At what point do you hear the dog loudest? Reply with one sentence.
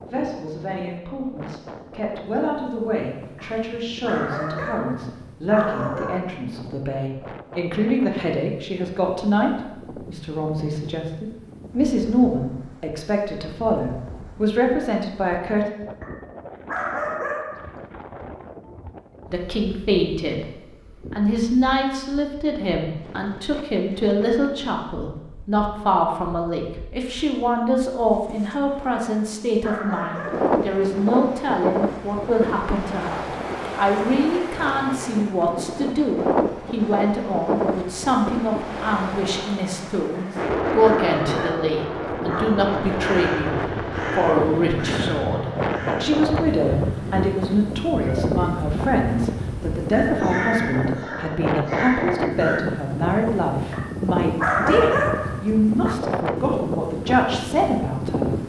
The loudest moment of the dog is at 55 seconds.